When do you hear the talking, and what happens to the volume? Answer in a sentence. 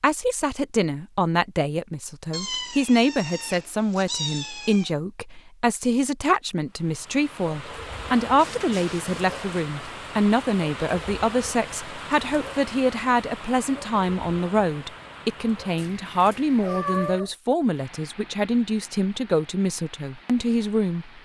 You can hear the talking from 0.0 to 21.2 s, at a steady volume.